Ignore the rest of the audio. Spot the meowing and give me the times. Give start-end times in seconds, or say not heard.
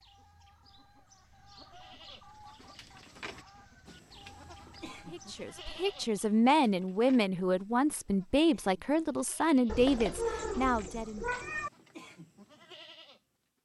9.7-11.7.